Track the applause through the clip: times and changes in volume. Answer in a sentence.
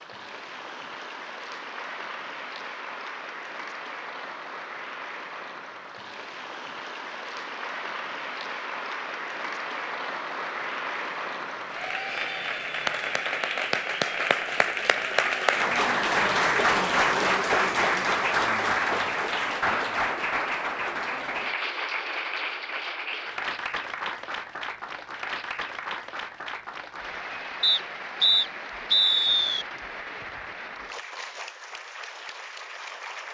You can hear the applause from 0.0 to 33.2 s, getting louder then quieter.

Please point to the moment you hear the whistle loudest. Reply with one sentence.
The loudest moment of the whistle is at 29 seconds.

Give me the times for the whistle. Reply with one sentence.
You can hear the whistle from 27.6 to 29.6 s.